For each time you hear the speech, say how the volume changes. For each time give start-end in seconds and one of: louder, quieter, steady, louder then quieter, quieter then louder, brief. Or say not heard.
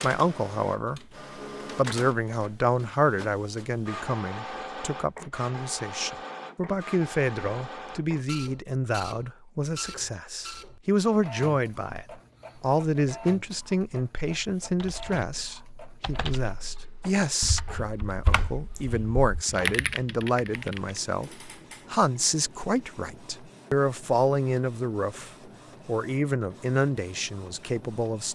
0.0-1.0 brief
1.8-28.2 steady.